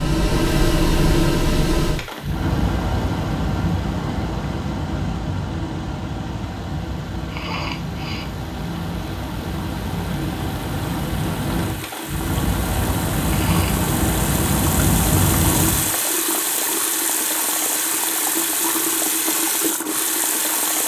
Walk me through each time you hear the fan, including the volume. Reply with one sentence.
You can hear the fan from 0.0 to 15.9 s, getting quieter then louder.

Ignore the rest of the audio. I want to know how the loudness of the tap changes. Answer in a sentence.
The loudness of the tap goes up.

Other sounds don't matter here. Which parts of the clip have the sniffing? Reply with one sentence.
The sniffing can be heard from 7.2 to 8.3 s and from 13.2 to 13.8 s.